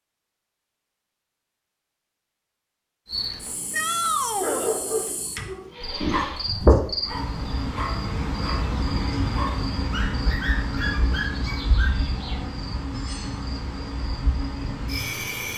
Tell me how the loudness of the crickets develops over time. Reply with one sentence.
The loudness of the crickets goes up, then down.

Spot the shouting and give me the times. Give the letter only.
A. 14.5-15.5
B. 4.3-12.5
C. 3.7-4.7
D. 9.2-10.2
C.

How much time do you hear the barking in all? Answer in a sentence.
The barking can be heard for 8 seconds in total.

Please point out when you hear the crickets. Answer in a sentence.
You can hear the crickets from 3.0 to 15.5 s.